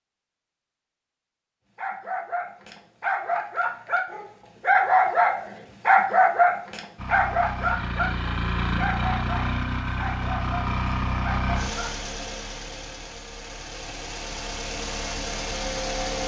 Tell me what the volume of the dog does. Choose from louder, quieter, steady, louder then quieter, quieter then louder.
louder then quieter.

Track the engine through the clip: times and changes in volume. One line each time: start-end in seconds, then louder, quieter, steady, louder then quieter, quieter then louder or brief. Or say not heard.
7.0-16.2 quieter then louder.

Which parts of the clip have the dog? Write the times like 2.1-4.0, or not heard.
1.8-11.9.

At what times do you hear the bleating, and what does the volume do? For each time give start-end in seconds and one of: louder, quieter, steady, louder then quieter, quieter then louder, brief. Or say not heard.
not heard.